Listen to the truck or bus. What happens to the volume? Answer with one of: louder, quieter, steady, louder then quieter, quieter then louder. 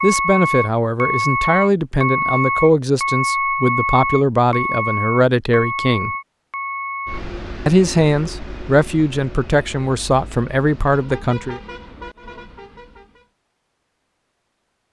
quieter.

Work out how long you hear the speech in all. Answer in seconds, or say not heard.
10 s.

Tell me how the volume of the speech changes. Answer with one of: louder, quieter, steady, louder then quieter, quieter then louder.
steady.